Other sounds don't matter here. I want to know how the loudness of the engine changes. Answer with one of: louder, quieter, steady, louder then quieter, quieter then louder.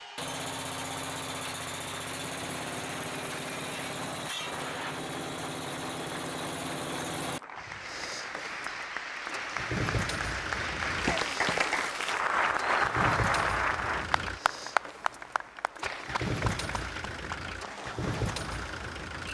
steady.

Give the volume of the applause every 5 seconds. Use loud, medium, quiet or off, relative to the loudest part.
quiet, medium, loud, medium.